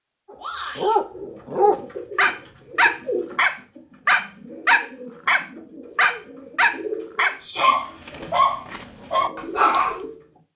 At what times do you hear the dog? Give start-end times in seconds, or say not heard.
0.3-10.0.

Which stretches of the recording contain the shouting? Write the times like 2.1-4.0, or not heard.
0.3-0.9, 7.4-7.8.